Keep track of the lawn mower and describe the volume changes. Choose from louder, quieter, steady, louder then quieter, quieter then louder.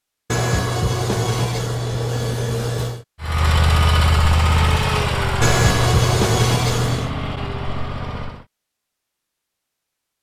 quieter.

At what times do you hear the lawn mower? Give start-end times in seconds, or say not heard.
3.2-8.4.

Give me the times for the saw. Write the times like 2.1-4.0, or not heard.
0.3-3.0, 5.4-7.1.